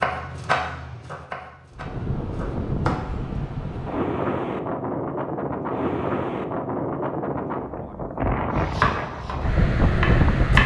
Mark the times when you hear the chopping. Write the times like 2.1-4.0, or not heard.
0.0-3.1, 8.6-10.6.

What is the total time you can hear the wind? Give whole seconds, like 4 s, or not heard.
9 s.